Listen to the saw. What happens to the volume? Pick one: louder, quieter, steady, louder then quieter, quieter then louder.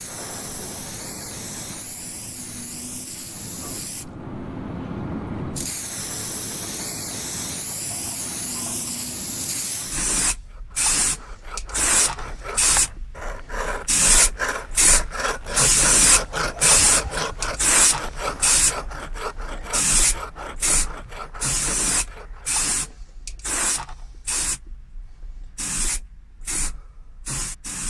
louder then quieter.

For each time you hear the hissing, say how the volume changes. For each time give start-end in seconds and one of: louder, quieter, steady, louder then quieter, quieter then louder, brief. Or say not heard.
0.0-27.8 louder then quieter.